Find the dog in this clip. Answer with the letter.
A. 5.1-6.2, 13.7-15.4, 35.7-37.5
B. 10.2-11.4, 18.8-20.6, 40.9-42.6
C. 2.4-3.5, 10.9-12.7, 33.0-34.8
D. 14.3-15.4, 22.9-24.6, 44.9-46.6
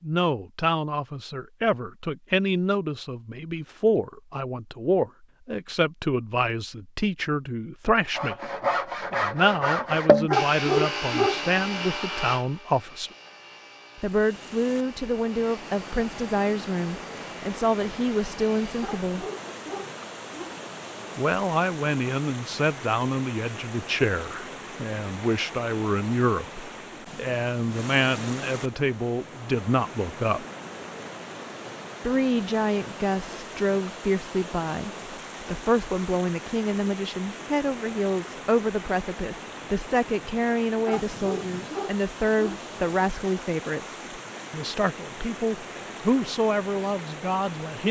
B.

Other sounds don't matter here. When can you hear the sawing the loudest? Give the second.
10 s.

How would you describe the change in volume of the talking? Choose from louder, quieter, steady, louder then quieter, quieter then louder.
steady.